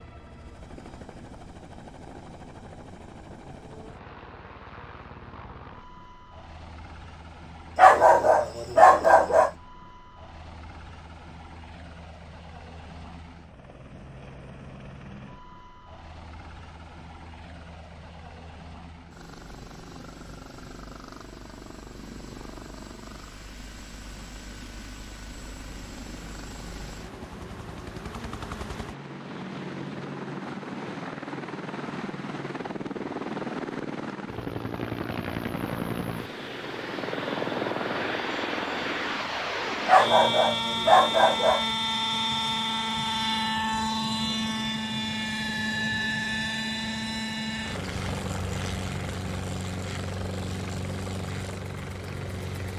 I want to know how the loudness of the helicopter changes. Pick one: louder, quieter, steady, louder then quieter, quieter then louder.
louder.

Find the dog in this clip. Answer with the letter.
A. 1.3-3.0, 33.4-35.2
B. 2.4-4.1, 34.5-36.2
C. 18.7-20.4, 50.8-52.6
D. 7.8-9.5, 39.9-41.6
D.